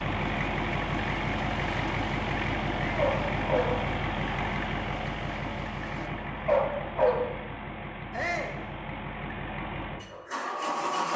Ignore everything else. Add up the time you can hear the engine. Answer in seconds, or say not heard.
11 s.